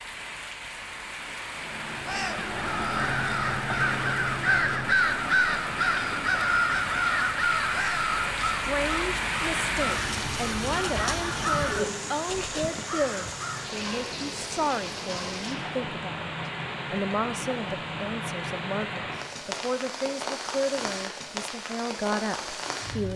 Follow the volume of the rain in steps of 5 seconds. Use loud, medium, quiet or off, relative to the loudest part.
medium, loud, loud, loud, loud.